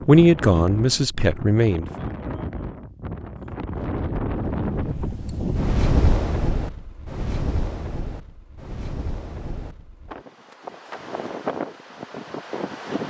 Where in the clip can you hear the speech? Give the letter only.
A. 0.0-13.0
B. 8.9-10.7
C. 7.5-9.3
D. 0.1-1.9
D.